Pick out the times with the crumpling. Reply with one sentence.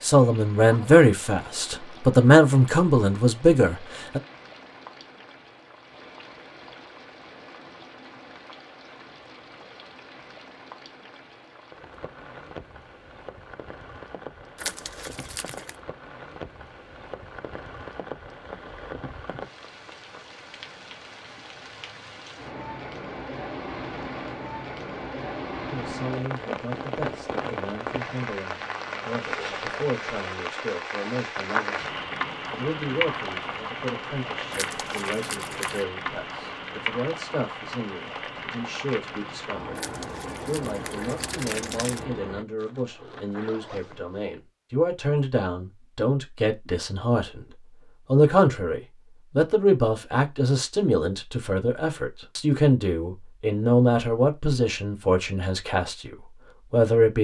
You can hear the crumpling from 14.6 to 15.8 s, from 34.5 to 35.9 s and from 39.8 to 42.0 s.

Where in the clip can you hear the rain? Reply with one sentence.
You can hear the rain from 0.0 to 42.5 s.